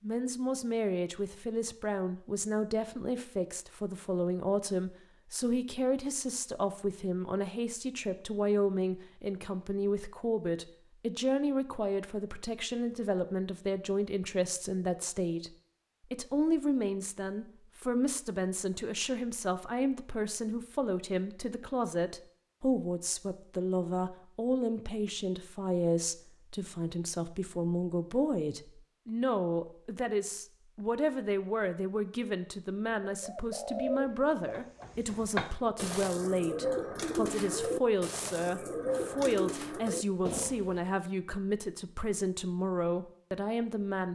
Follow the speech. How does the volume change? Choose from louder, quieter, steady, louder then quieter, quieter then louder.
steady.